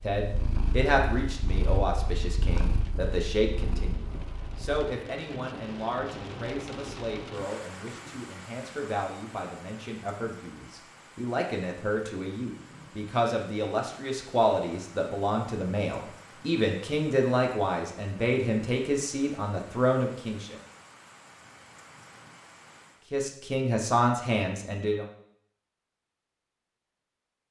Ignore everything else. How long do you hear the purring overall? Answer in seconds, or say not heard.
5 s.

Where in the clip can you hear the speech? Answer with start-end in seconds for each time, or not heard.
0.0-20.6, 23.1-25.1.